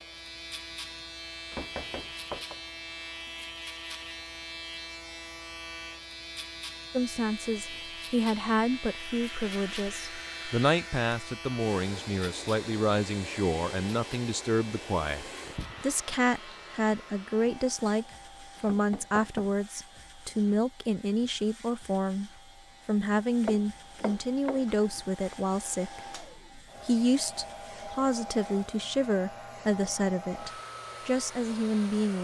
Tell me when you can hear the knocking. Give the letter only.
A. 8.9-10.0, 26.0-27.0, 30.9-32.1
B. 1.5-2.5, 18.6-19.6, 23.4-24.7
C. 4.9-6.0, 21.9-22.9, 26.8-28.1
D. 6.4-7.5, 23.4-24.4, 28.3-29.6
B.